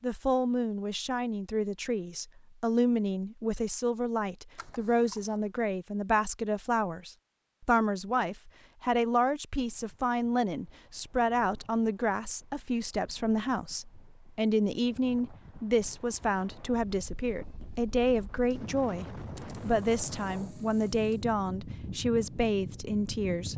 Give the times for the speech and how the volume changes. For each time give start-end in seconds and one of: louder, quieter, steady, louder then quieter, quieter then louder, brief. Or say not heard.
0.0-23.5 steady.